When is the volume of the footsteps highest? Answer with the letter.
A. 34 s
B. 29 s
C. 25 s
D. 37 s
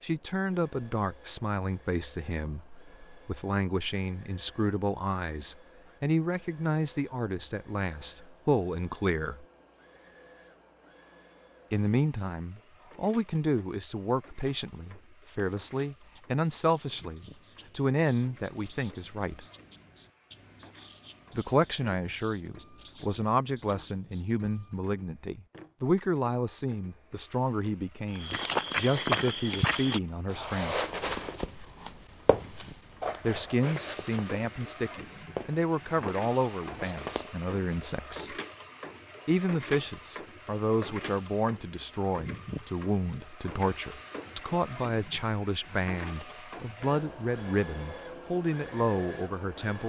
B.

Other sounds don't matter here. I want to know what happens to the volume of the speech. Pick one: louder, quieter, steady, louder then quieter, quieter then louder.
steady.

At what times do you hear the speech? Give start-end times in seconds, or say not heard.
0.0-9.4, 11.7-19.4, 21.4-30.8, 33.2-38.4, 39.2-49.8.